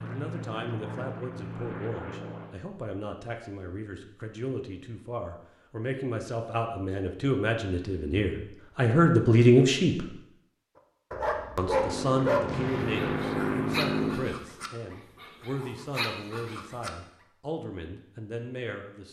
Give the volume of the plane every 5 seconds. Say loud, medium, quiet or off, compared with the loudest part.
medium, off, loud, off.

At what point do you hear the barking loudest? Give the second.
12 s.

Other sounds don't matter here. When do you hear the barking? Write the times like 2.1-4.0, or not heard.
11.1-16.9.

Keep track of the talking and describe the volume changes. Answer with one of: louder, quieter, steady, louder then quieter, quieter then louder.
louder then quieter.